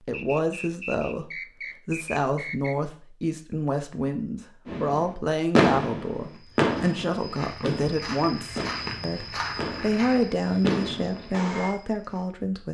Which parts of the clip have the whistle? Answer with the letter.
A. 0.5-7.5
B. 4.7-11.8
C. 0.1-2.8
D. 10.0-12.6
C.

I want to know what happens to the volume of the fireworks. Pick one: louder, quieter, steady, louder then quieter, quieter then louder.
quieter then louder.